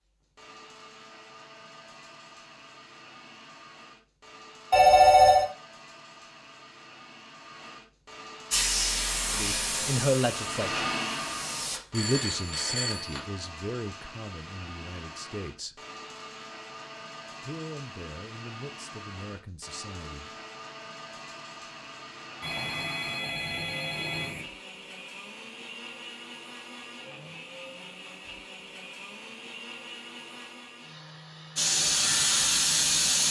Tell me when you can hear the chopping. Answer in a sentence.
The chopping can't be heard in this clip.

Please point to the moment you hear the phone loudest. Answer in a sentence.
The loudest moment of the phone is at 5 seconds.